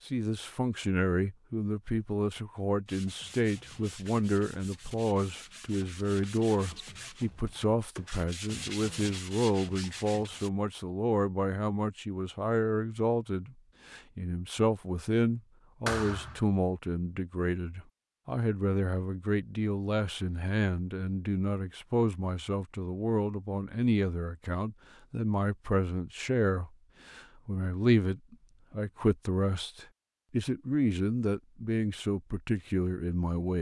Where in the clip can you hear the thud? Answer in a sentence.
The thud can be heard from 15.8 to 16.4 s.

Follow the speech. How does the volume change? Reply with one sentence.
The volume of the speech stays about the same.